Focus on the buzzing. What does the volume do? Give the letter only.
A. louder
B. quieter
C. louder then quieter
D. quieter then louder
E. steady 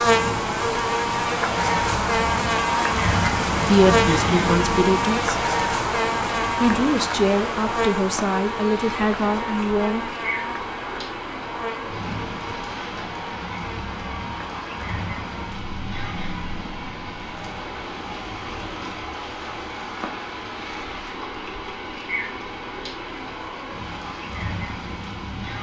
B.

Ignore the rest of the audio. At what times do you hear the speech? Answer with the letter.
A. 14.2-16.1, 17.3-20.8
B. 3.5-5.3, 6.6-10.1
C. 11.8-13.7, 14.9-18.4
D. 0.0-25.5
B.